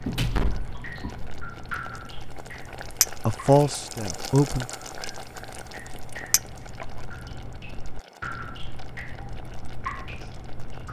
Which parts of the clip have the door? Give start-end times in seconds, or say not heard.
0.1-1.2.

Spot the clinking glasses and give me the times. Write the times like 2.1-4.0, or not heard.
3.0-3.5, 6.3-6.8.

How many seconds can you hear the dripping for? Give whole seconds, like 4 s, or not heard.
11 s.